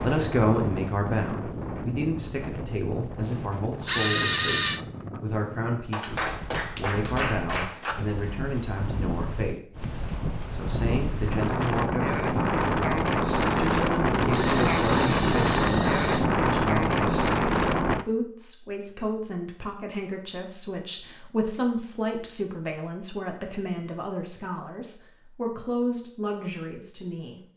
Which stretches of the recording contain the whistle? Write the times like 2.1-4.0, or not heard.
not heard.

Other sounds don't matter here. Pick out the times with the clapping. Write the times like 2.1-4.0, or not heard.
5.9-8.0.